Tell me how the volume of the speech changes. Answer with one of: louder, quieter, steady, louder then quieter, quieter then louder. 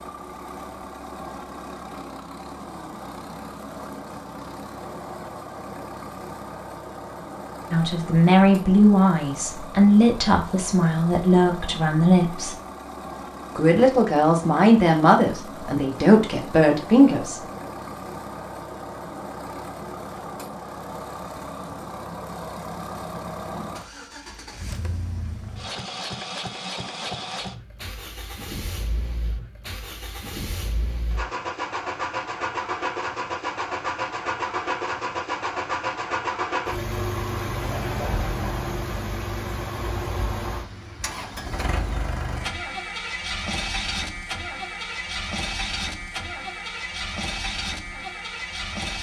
steady.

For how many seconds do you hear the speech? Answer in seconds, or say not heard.
9 s.